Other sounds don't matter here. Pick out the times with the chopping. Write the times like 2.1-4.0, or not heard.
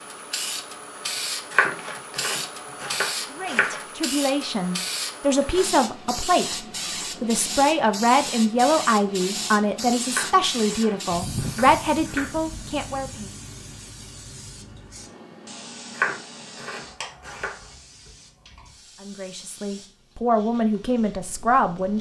1.5-3.8, 10.1-12.3, 15.9-17.6.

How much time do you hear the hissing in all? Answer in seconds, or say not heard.
22 s.